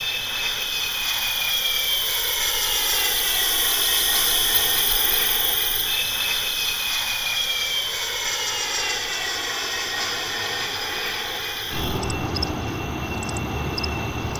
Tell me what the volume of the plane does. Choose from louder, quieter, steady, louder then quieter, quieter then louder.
steady.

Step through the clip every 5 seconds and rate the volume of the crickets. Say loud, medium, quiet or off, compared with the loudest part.
loud, loud, medium.